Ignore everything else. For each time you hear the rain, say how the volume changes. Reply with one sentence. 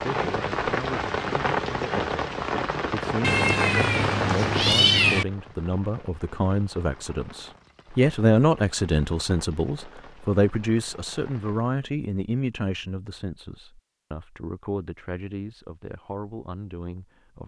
You can hear the rain from 0.0 to 11.8 s, getting quieter.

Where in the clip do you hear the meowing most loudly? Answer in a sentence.
The volume of the meowing peaks at 5 seconds.